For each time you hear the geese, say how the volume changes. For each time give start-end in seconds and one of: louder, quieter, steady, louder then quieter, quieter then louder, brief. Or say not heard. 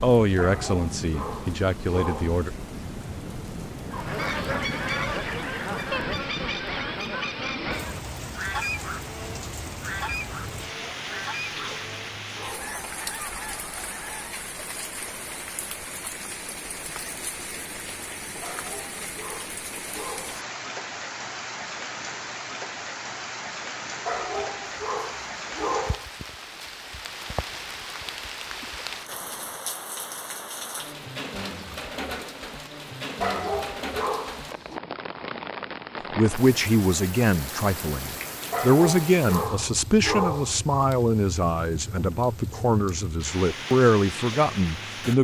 3.9-14.3 quieter.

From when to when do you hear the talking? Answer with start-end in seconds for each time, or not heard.
0.0-2.5, 36.1-45.1.